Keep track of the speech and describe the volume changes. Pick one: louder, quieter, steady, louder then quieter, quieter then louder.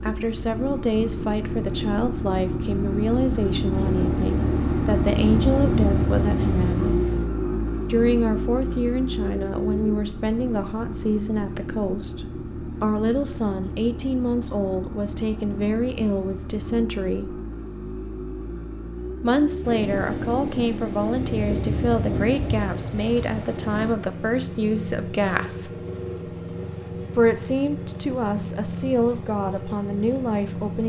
steady.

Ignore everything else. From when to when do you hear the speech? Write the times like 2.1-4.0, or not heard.
0.0-6.9, 7.8-17.4, 19.2-25.7, 27.1-30.8.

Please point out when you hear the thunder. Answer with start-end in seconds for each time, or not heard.
3.7-7.3, 19.6-23.9.